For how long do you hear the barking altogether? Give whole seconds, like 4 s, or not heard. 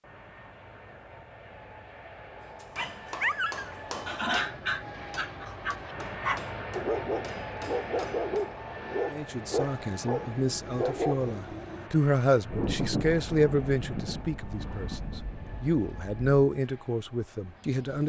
9 s.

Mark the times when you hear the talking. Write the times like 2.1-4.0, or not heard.
9.1-18.0.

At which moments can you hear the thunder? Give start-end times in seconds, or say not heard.
12.4-16.2.